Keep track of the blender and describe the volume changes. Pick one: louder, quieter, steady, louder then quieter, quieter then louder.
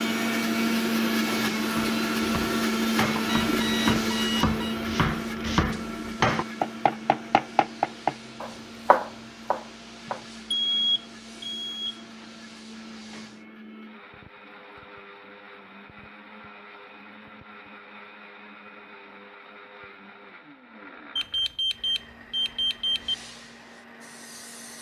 quieter.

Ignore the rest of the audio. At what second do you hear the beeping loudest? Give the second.
11 s.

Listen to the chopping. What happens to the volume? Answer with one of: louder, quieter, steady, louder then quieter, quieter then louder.
louder.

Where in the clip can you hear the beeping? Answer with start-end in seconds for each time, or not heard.
3.2-4.8, 10.1-12.0, 21.1-23.1.